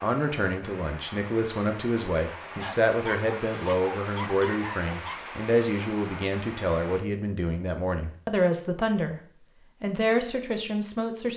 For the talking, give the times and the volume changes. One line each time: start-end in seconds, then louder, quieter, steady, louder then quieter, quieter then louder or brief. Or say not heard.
0.0-9.2 steady
9.8-11.3 brief.